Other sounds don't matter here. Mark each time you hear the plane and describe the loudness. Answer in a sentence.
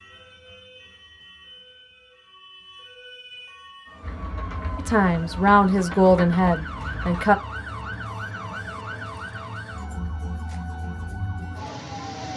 You can't hear the plane here.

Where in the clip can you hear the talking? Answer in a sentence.
You can hear the talking from 4.8 to 7.3 s.